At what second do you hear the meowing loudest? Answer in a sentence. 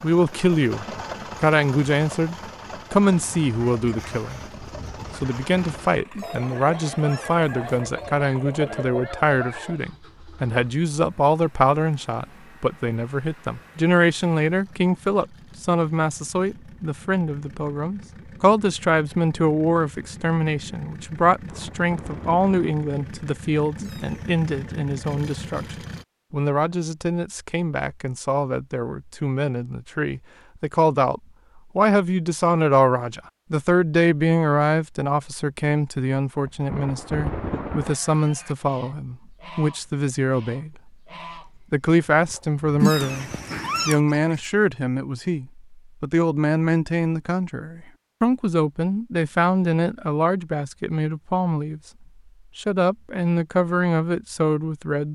The volume of the meowing peaks at 43 seconds.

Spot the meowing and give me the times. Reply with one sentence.
You can hear the meowing from 6.1 to 7.8 s, from 23.8 to 24.4 s and from 42.8 to 44.0 s.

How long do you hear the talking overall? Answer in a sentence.
You can hear the talking for 53 seconds altogether.